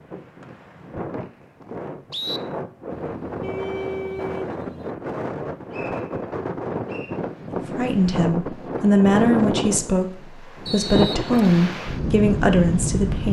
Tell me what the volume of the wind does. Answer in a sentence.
The loudness of the wind goes up.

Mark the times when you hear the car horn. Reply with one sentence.
The car horn can be heard from 3.0 to 4.9 s.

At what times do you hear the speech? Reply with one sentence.
You can hear the speech from 7.8 to 13.2 s.